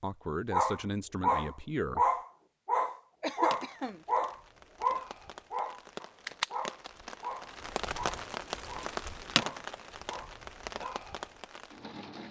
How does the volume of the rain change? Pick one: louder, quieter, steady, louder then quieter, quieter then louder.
louder then quieter.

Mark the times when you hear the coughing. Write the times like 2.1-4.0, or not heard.
3.2-4.0.